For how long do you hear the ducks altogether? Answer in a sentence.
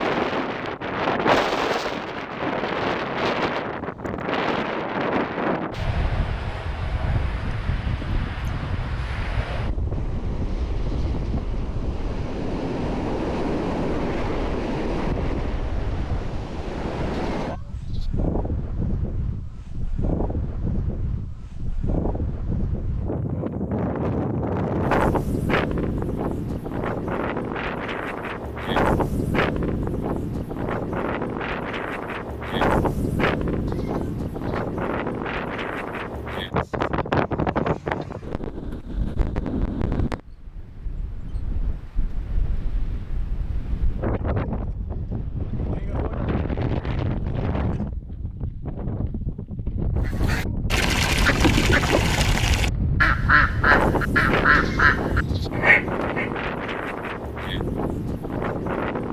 You can hear the ducks for 6 seconds altogether.